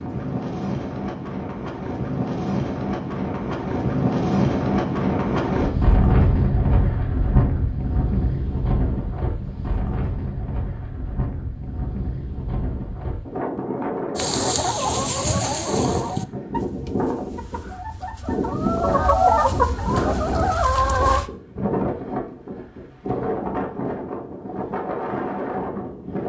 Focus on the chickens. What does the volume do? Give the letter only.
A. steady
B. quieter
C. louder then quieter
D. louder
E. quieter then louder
E.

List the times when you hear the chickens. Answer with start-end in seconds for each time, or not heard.
14.2-21.2.